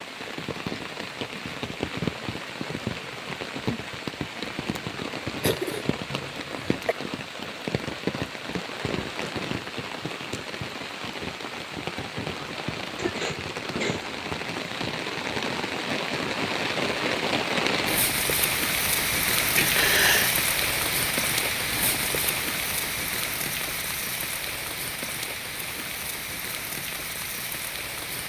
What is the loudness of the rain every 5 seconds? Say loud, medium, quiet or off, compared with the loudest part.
medium, medium, medium, loud, loud, medium.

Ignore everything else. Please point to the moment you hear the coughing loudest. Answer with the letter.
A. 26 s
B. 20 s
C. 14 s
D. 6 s
B.